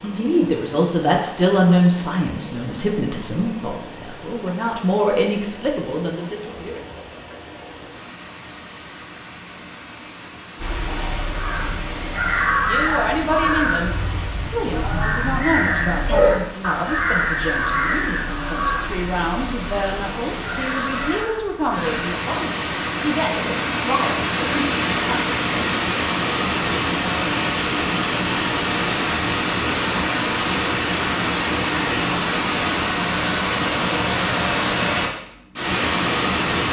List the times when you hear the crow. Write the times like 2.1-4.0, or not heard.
10.6-21.9.